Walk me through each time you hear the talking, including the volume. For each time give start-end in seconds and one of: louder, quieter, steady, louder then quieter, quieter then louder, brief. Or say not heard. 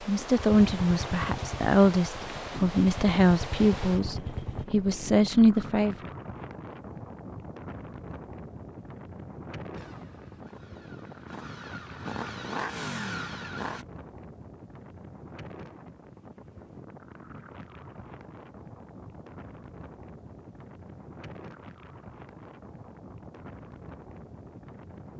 0.1-6.1 steady.